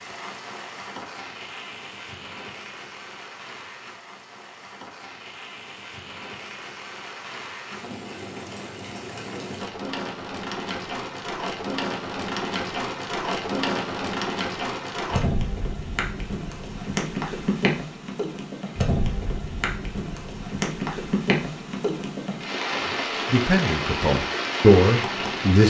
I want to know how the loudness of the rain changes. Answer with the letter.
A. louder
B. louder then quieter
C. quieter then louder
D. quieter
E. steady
A.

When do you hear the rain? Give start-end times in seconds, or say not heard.
0.0-25.6.